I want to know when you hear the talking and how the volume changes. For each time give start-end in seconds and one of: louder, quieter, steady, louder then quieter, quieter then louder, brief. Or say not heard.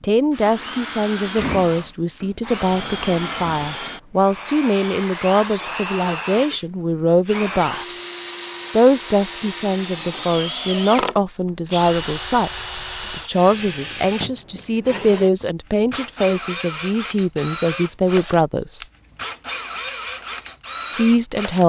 0.0-8.0 steady
8.7-18.8 steady
20.9-21.6 brief.